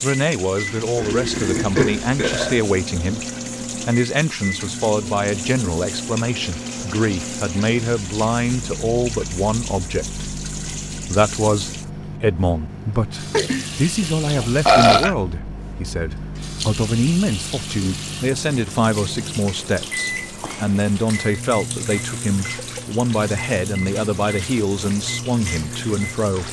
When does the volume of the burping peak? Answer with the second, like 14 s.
15 s.